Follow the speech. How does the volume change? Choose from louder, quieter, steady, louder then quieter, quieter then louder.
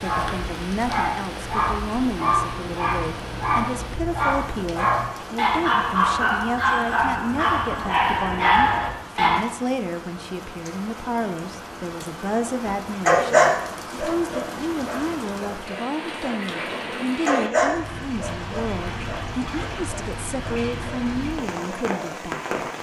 steady.